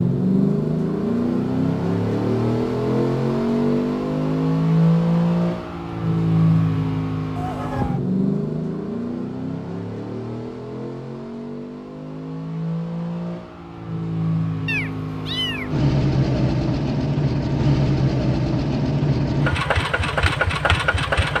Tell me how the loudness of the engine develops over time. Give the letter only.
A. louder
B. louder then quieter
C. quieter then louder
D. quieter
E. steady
C.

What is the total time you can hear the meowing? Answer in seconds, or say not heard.
2 s.